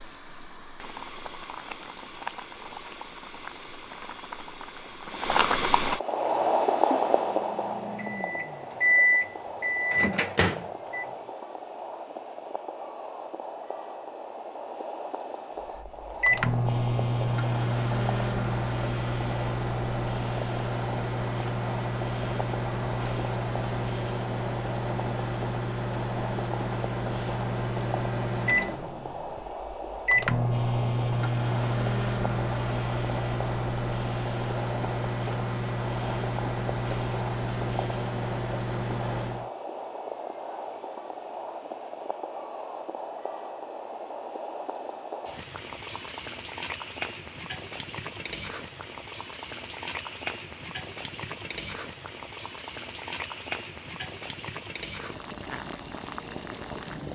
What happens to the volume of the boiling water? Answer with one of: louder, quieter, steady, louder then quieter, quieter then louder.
quieter.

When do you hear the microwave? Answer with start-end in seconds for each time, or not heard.
6.3-11.1, 15.8-39.5.